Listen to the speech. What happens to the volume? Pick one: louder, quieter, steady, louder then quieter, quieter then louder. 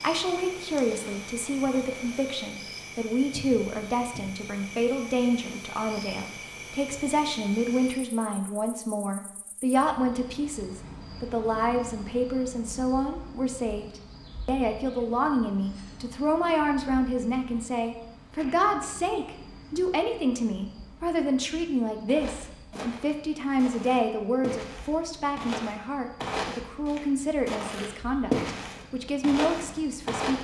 steady.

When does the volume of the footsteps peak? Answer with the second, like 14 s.
28 s.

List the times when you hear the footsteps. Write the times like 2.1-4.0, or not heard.
22.1-30.3.